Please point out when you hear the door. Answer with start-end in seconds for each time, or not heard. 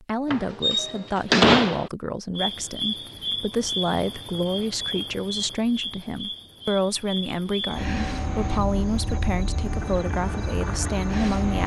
0.3-1.9.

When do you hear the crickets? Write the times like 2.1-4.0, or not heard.
2.4-11.6.